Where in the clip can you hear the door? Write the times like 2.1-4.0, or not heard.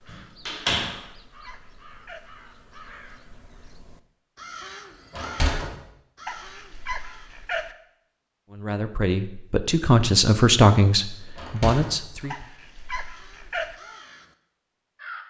0.1-0.9, 5.1-5.7, 11.3-12.3.